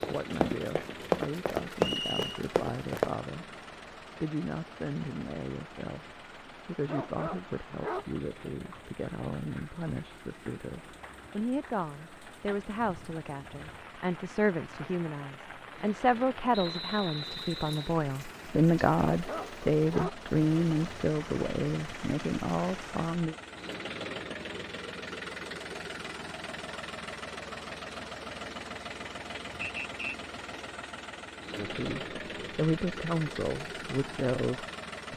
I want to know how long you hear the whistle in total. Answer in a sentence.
You can hear the whistle for 3 seconds altogether.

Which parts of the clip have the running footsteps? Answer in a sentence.
The running footsteps can be heard from 0.0 to 3.1 s.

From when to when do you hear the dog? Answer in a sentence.
You can hear the dog from 6.8 to 8.1 s and from 19.1 to 20.2 s.